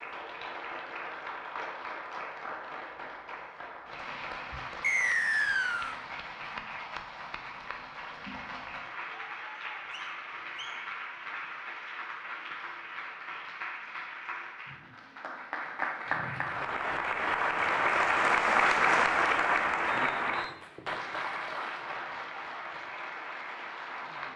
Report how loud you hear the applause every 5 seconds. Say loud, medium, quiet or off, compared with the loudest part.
quiet, quiet, quiet, loud, medium.